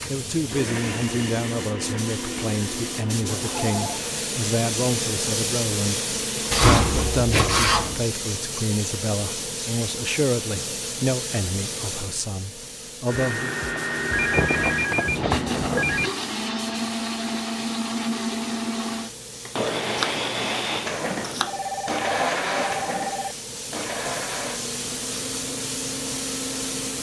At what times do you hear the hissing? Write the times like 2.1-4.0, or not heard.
0.0-26.9.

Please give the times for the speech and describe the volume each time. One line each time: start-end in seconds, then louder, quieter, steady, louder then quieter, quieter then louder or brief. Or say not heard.
0.1-13.6 steady.